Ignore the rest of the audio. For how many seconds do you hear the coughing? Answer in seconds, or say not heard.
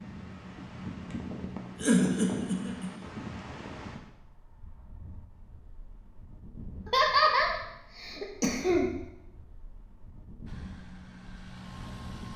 3 s.